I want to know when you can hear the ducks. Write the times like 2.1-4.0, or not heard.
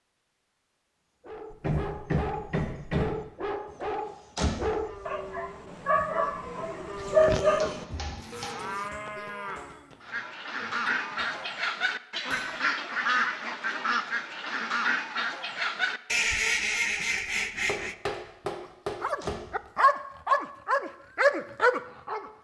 10.0-17.9.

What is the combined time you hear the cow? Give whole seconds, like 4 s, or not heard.
7 s.